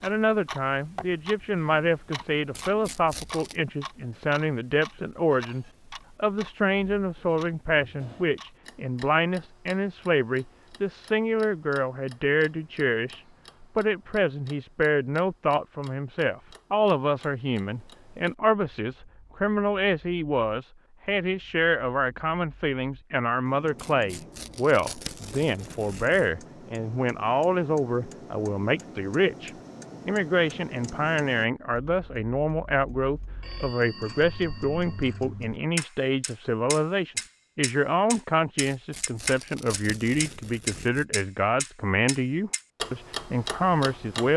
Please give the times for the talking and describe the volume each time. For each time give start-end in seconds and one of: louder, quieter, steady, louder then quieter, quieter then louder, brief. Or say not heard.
0.0-44.3 steady.